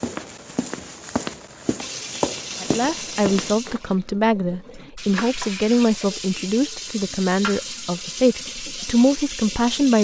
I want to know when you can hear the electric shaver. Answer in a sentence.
The electric shaver can't be heard in this clip.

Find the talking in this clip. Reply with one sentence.
You can hear the talking from 2.6 to 9.9 s.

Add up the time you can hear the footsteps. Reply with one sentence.
You can hear the footsteps for 4 seconds altogether.